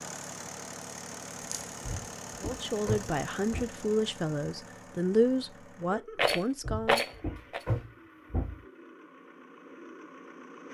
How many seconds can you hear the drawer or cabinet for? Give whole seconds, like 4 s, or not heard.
4 s.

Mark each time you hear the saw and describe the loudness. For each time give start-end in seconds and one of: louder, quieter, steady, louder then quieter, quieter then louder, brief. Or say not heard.
not heard.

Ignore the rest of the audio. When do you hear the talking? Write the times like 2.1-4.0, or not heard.
2.4-7.0.